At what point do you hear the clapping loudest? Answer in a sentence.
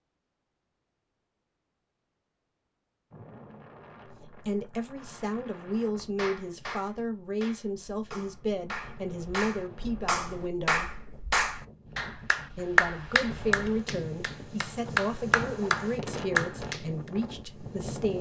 The volume of the clapping peaks at 13 seconds.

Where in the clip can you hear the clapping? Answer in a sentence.
You can hear the clapping from 6.0 to 16.8 s.